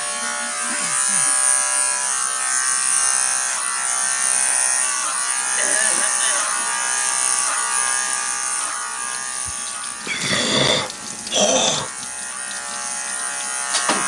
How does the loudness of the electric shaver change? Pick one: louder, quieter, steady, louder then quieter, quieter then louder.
quieter.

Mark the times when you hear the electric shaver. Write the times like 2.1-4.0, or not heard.
0.0-14.0.